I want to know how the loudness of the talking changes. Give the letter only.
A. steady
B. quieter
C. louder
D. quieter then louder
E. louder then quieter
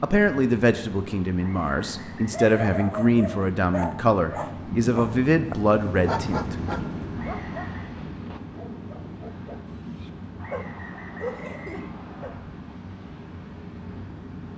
A.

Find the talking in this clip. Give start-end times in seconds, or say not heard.
0.0-6.8.